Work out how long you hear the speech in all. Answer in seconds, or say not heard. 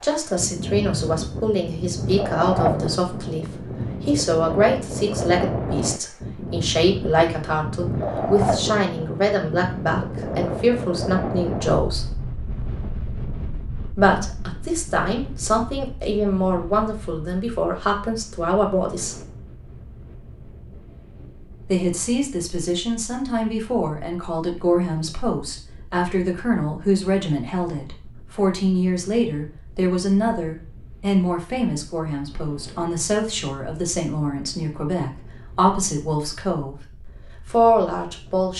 34 s.